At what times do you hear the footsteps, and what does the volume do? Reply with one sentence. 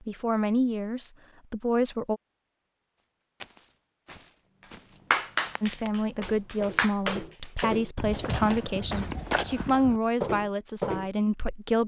The footsteps can be heard from 3.0 to 11.1 s, getting louder.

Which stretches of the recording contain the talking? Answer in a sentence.
The talking can be heard from 0.0 to 2.2 s and from 5.6 to 11.8 s.